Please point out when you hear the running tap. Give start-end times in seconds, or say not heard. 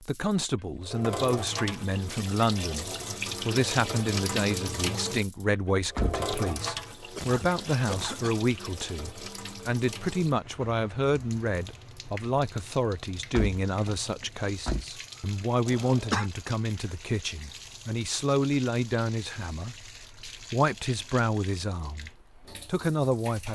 0.0-23.5.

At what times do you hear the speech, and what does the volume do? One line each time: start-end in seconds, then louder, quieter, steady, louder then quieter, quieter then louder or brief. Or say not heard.
0.0-23.5 steady.